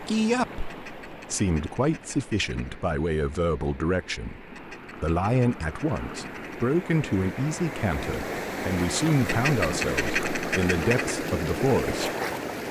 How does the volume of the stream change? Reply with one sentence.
The loudness of the stream goes up.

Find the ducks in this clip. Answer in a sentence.
The ducks can be heard from 0.6 to 2.7 s, from 4.5 to 6.8 s and from 9.2 to 11.2 s.